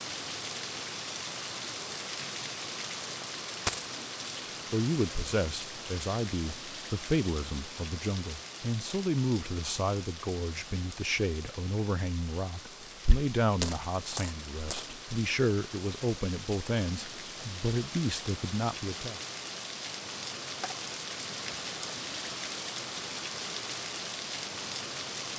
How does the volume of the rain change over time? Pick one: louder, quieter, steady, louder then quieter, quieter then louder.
quieter then louder.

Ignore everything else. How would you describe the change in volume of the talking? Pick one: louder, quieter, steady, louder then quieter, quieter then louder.
steady.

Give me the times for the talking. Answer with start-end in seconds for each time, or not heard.
4.7-19.2.